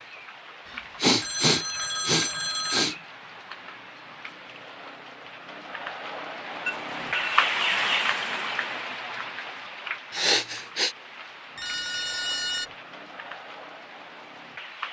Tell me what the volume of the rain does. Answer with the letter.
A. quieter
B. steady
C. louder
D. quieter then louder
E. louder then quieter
E.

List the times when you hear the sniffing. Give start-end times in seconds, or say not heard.
1.0-3.0, 10.1-10.9.